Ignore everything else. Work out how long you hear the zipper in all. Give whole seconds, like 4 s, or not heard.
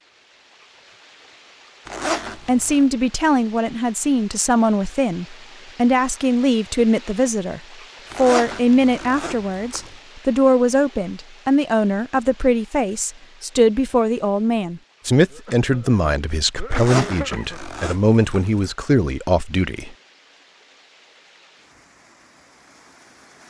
5 s.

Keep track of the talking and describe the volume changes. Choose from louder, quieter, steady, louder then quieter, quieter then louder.
steady.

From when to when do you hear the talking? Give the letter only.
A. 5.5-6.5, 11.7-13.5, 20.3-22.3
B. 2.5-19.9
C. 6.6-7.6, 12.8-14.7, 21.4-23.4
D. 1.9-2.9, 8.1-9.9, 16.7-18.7
B.